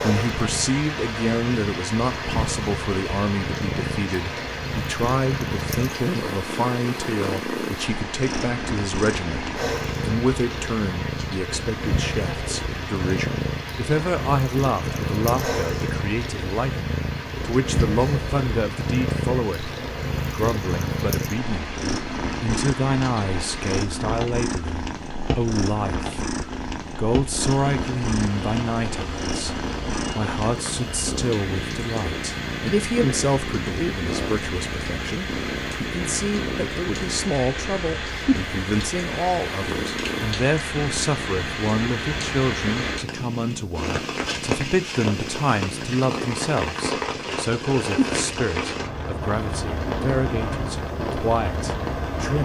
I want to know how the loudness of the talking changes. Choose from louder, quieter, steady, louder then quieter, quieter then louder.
steady.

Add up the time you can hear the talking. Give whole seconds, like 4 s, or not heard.
51 s.